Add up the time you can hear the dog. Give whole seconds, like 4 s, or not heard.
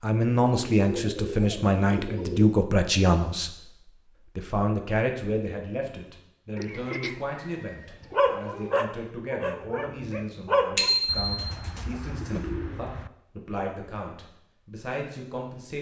3 s.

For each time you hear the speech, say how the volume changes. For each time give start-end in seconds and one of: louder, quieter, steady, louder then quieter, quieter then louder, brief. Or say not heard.
0.0-15.7 quieter.